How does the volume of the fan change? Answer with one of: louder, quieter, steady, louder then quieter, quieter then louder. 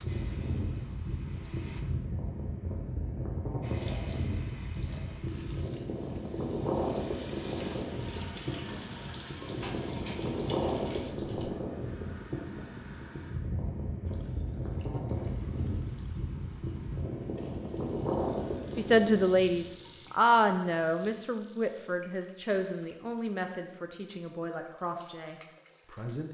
steady.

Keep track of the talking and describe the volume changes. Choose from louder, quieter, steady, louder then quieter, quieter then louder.
quieter.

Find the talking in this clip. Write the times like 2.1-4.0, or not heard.
18.8-26.2.